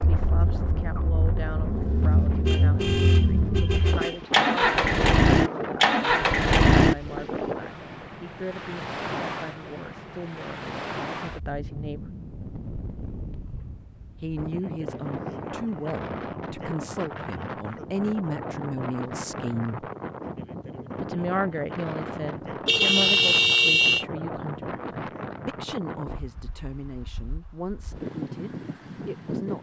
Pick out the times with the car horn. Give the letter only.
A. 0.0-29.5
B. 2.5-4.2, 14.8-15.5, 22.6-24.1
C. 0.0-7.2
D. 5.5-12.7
B.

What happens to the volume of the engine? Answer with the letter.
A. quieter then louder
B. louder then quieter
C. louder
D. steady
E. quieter
C.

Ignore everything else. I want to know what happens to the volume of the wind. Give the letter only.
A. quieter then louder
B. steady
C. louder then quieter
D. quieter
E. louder
B.